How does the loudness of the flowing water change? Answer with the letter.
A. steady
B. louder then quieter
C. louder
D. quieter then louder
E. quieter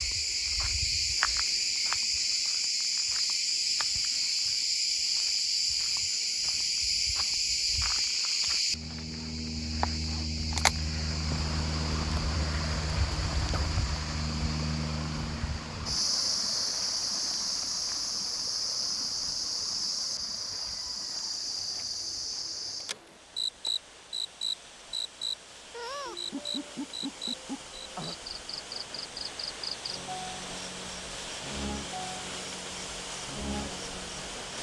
D.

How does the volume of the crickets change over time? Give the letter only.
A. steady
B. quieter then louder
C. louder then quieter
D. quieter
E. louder
D.